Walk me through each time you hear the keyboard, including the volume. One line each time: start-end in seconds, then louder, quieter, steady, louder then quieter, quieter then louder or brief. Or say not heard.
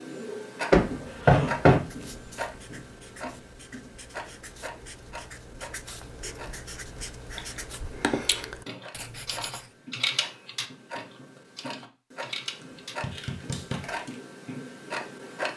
7.3-14.2 quieter.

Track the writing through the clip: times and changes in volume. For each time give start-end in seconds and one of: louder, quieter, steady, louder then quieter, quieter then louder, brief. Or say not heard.
1.8-9.8 louder.